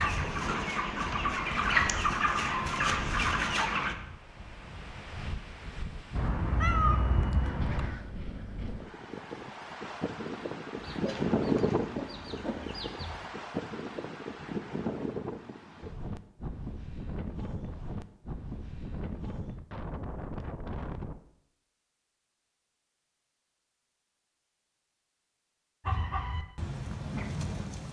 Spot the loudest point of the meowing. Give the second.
7 s.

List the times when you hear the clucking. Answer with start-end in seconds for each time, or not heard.
0.0-4.0, 10.8-13.2, 25.8-27.8.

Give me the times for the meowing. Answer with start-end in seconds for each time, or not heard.
6.2-8.0.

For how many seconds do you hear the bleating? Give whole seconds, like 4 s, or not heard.
not heard.